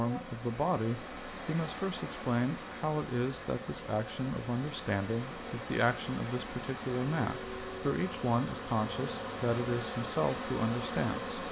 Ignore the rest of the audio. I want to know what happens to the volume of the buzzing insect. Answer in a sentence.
The volume of the buzzing insect goes up.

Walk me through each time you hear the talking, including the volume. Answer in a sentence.
You can hear the talking from 0.0 to 11.3 s, at a steady volume.